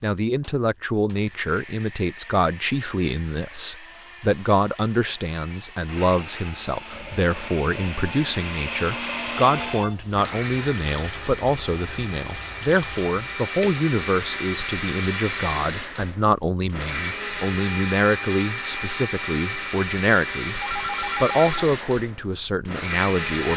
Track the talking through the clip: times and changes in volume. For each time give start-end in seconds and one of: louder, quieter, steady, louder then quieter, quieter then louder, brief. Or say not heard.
0.0-20.6 steady
21.2-23.5 brief.